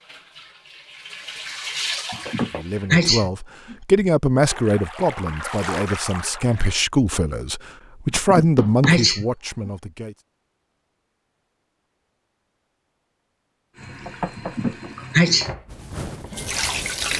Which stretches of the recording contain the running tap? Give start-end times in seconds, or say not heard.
0.0-2.9, 4.4-6.8, 13.8-17.1.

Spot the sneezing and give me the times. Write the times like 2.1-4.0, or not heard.
2.1-3.8, 8.1-9.7, 14.3-15.6.